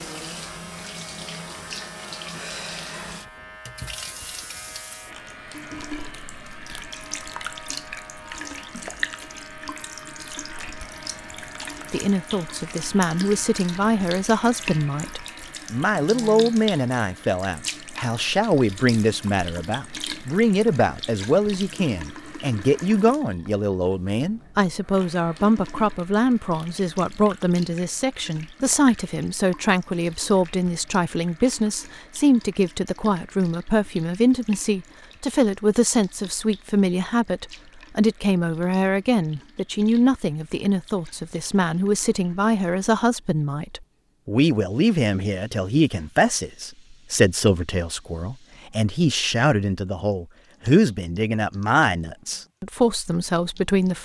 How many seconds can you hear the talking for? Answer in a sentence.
You can hear the talking for 42 seconds altogether.